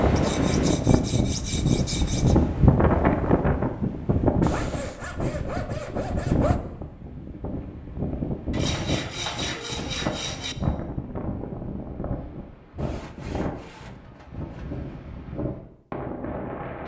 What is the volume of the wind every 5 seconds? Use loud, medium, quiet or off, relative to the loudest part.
loud, medium, medium, medium.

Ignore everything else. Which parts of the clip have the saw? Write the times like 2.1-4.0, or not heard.
0.1-2.4, 4.4-6.6, 8.5-10.6, 12.8-14.8.